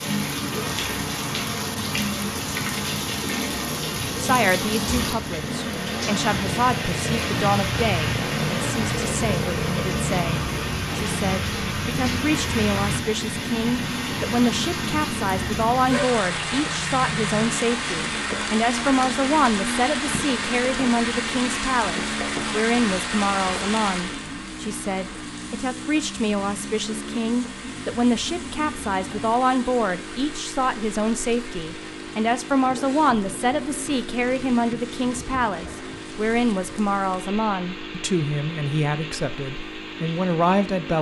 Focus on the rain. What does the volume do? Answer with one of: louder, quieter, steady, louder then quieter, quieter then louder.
quieter.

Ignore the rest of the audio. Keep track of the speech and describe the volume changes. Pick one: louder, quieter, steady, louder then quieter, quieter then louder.
steady.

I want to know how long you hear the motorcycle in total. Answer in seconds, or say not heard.
41 s.